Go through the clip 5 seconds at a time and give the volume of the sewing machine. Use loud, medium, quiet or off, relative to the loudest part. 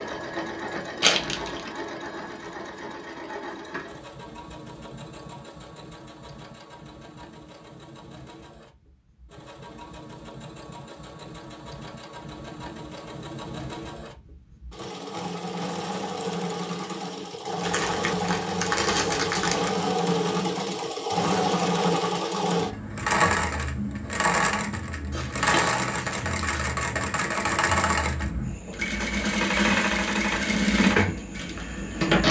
quiet, quiet, quiet, medium, loud, loud, loud.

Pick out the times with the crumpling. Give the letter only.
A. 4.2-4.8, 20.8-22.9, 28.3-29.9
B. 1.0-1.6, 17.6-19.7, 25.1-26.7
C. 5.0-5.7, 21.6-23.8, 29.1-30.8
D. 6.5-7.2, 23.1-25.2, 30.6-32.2
B.